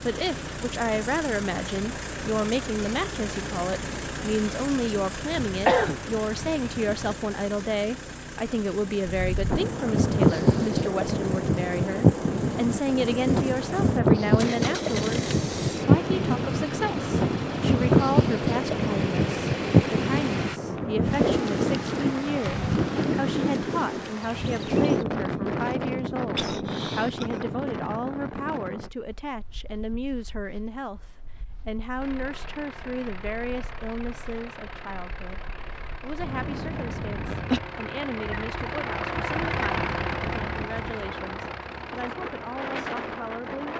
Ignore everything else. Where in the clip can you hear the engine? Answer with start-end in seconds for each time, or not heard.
0.0-20.6, 31.9-43.7.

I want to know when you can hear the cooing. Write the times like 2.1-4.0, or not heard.
not heard.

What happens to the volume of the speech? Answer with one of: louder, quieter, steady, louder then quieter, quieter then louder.
quieter.